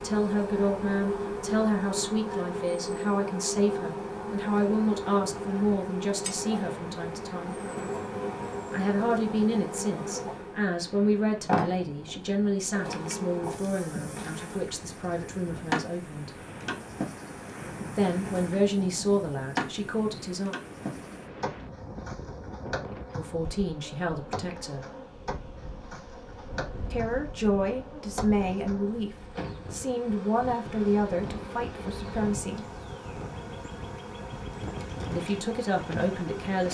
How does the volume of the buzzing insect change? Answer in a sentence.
The loudness of the buzzing insect goes down.